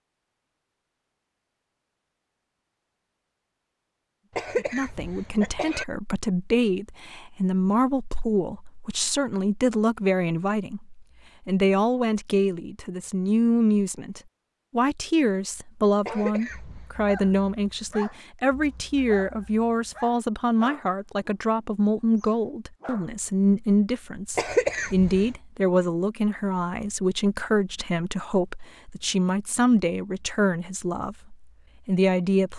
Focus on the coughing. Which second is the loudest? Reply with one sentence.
The loudest moment of the coughing is at 25 seconds.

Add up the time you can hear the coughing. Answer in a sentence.
You can hear the coughing for 3 seconds altogether.